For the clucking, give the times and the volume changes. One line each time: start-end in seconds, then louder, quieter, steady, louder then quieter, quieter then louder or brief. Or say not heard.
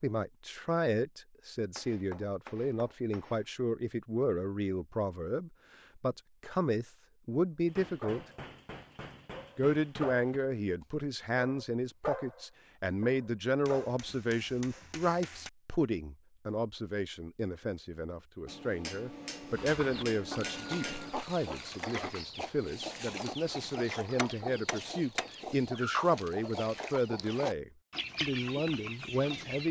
19.5-29.6 steady.